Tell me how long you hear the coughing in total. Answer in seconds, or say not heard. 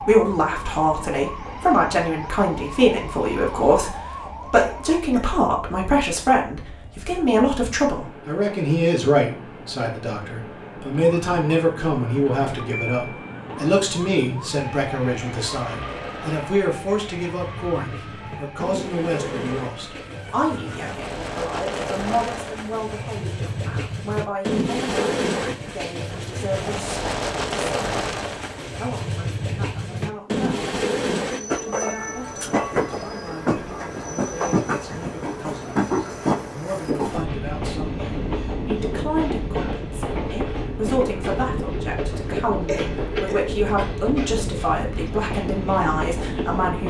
2 s.